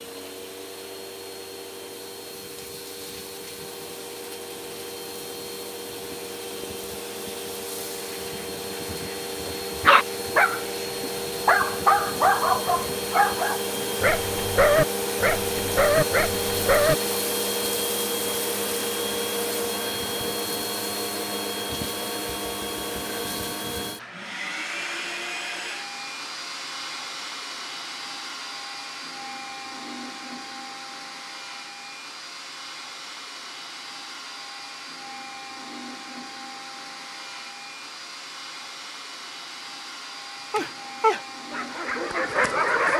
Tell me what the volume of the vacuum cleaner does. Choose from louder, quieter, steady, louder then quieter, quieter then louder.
louder then quieter.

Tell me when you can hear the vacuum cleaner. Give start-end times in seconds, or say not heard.
0.0-42.9.